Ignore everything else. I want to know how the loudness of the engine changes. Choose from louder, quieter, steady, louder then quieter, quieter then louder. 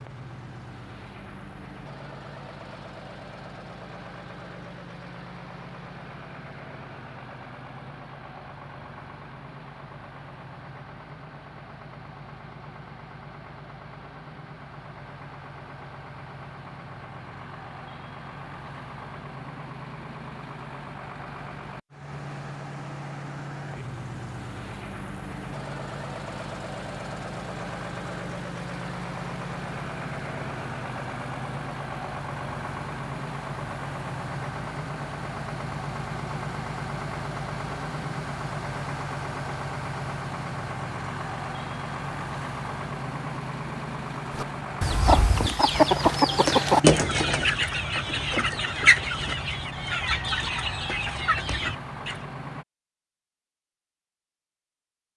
louder.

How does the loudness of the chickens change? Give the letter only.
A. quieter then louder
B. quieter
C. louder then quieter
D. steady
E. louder
B.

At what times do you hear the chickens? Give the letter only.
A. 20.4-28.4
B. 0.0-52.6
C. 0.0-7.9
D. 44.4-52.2
D.